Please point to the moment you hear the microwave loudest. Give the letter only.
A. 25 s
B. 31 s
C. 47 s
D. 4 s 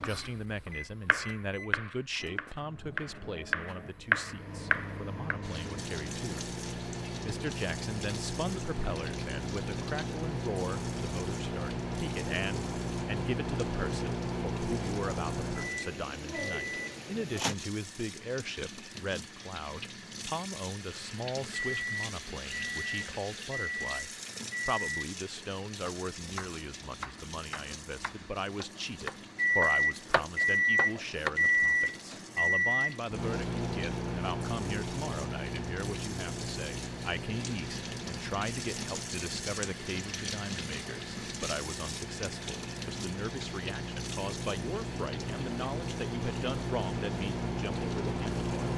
B.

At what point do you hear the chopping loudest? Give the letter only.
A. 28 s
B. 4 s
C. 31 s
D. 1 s
B.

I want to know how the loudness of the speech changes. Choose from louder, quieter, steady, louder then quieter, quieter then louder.
steady.